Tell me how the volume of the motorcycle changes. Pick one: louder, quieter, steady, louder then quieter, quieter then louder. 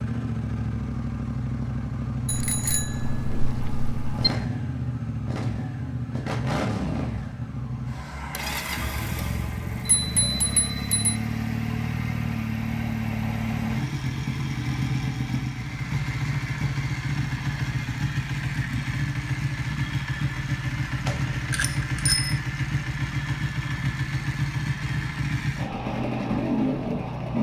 steady.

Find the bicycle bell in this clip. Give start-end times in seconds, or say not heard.
2.2-4.3, 9.8-11.2, 21.1-22.4.